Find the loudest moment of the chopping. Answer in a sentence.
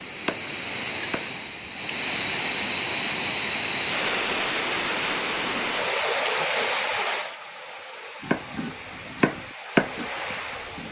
The loudest moment of the chopping is at 10 seconds.